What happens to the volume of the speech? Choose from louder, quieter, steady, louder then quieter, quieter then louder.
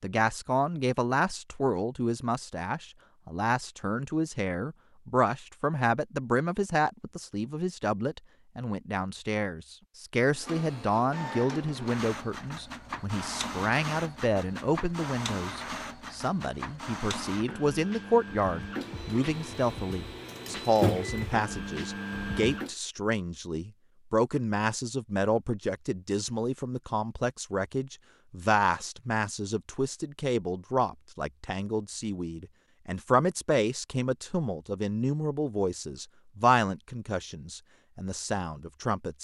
steady.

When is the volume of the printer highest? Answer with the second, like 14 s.
21 s.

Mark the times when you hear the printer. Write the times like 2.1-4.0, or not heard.
10.3-22.7.